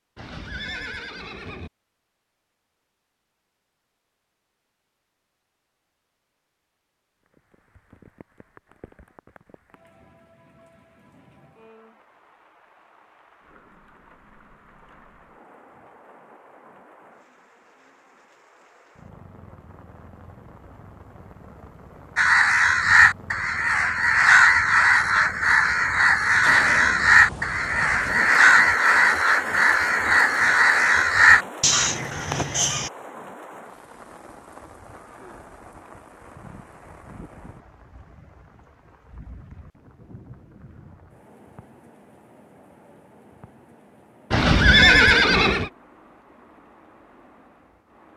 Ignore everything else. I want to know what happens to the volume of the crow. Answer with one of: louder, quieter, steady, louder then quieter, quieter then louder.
steady.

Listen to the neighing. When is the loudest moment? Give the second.
45 s.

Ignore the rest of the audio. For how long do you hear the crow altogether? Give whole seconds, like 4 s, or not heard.
11 s.